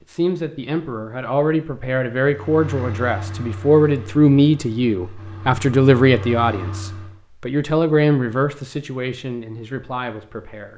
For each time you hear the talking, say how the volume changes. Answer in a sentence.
The talking can be heard from 0.0 to 10.7 s, getting louder then quieter.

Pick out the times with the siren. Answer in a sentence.
You can't hear the siren here.